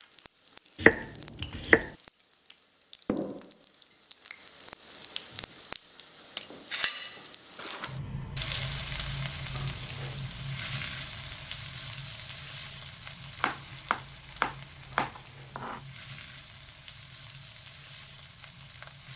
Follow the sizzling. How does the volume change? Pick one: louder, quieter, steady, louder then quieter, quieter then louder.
louder then quieter.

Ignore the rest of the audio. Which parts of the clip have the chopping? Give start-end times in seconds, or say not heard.
0.8-1.9, 13.4-15.8.